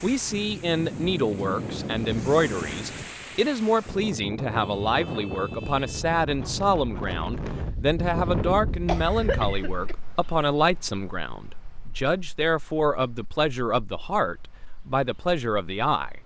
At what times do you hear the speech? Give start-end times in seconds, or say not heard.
0.0-16.1.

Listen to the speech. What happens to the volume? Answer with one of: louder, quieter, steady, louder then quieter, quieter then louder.
steady.